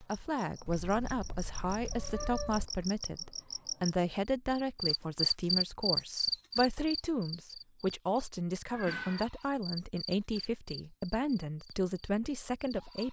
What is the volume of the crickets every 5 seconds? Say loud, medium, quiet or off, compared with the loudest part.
medium, loud, quiet.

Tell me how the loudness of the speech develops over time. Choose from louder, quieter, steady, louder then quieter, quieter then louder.
steady.